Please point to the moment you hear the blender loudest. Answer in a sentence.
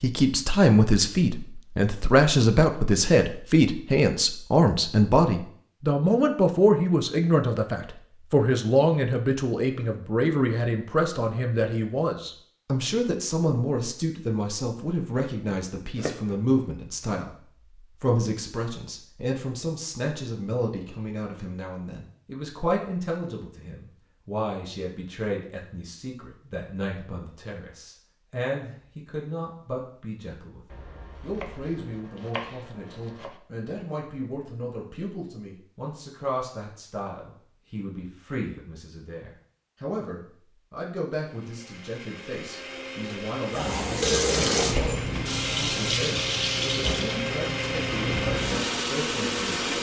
The loudest moment of the blender is at 49 seconds.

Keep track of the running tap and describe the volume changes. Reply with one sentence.
The volume of the running tap goes down.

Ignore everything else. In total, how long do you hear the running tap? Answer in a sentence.
You can hear the running tap for 6 seconds altogether.